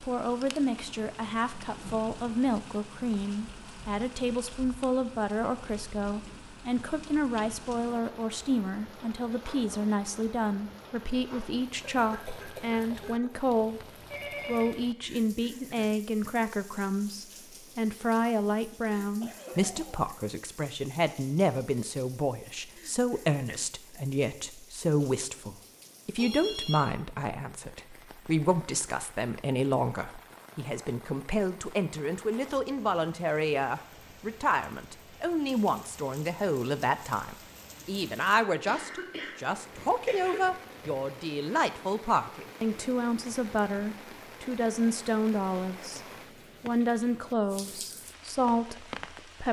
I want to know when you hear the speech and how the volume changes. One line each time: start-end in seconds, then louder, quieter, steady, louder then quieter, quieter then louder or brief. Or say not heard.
0.0-13.8 steady
14.4-46.0 steady
46.6-49.4 brief.